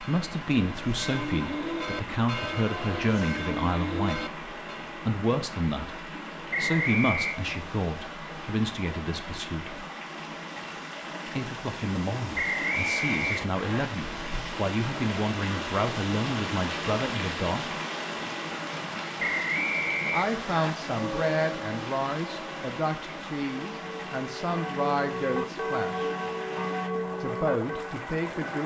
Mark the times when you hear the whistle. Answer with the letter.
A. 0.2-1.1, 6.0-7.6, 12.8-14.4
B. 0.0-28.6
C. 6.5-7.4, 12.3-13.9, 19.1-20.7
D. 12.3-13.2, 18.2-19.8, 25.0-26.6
C.